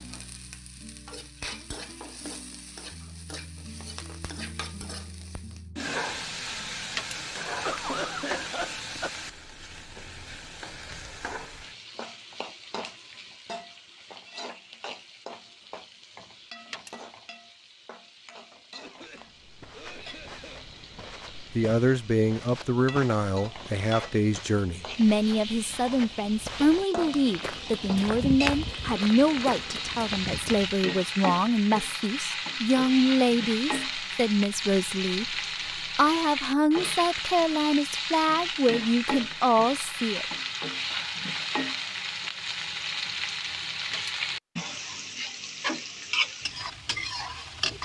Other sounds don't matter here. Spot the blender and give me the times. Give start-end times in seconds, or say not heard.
not heard.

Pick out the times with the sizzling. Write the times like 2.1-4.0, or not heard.
0.0-47.8.